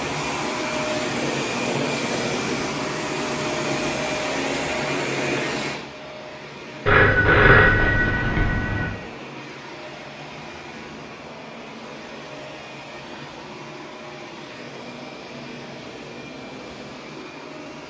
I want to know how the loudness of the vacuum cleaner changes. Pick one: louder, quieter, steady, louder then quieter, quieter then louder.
quieter.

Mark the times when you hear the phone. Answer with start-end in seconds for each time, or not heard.
6.8-8.8.